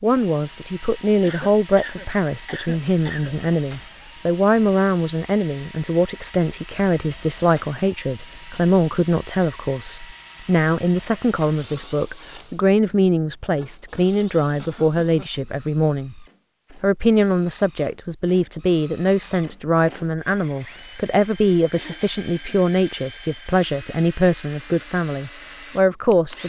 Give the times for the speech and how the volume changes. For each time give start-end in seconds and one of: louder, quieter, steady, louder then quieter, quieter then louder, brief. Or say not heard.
0.0-26.4 steady.